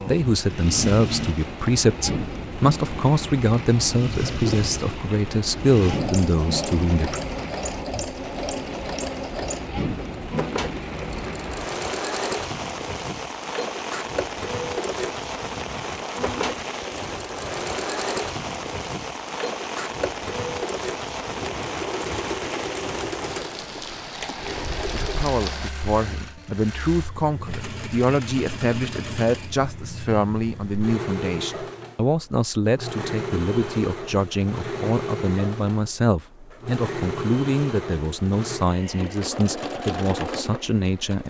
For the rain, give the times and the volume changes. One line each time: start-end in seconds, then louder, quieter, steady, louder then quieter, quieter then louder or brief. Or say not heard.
0.0-25.7 steady.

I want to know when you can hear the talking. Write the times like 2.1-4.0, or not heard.
0.1-7.2, 24.9-41.2.